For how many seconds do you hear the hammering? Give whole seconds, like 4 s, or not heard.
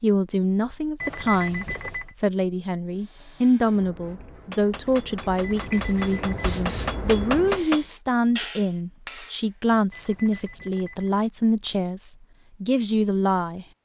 5 s.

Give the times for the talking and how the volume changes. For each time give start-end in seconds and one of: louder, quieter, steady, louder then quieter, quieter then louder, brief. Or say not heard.
0.0-13.7 steady.